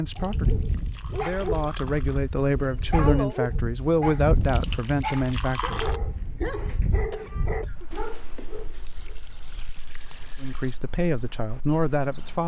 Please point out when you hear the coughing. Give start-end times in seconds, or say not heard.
2.4-3.4, 7.1-7.9.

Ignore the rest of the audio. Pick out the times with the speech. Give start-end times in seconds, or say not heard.
0.0-5.8, 10.4-12.4.